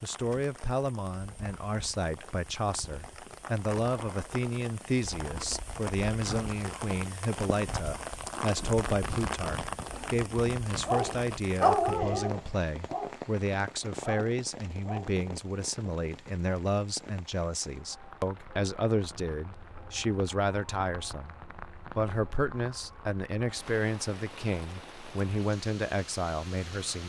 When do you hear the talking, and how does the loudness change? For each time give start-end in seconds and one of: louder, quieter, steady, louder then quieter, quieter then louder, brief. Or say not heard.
0.0-27.0 steady.